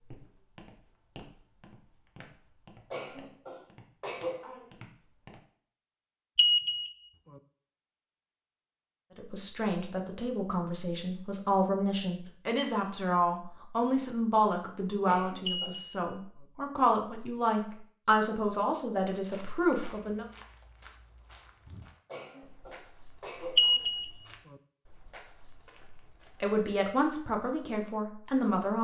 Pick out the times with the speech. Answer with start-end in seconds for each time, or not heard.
9.2-20.2, 26.4-28.7.